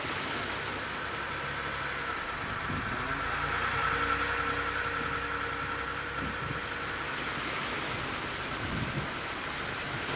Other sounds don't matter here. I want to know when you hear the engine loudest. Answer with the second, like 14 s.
4 s.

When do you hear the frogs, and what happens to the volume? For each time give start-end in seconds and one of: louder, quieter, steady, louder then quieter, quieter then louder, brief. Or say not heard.
not heard.